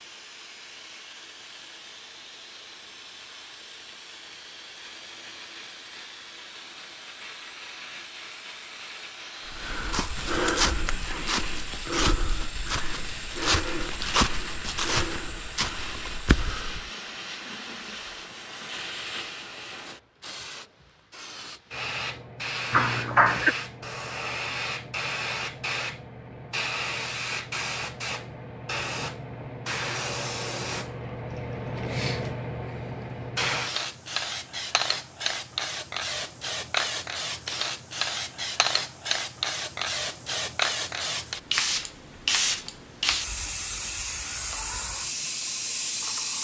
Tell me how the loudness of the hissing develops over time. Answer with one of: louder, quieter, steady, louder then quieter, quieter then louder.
louder.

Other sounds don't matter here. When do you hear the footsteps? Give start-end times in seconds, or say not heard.
9.4-16.9.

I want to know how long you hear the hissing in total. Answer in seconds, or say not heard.
46 s.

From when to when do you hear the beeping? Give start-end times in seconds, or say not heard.
not heard.